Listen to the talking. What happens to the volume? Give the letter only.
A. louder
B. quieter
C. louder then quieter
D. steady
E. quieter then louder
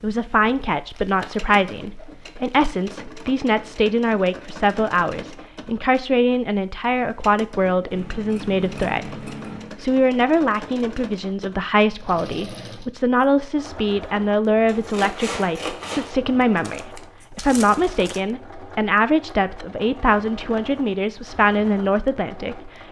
D.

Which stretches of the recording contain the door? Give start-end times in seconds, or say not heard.
not heard.